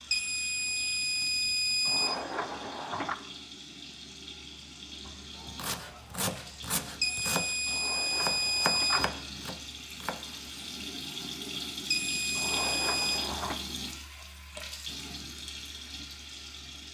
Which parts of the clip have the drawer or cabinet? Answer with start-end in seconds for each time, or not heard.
1.9-3.1, 7.7-9.1, 12.3-13.6.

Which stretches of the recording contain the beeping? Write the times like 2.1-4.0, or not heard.
0.1-2.1, 7.0-9.0, 11.9-13.2.